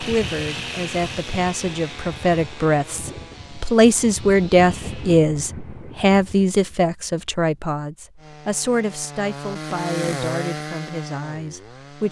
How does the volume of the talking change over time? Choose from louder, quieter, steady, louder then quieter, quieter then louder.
louder then quieter.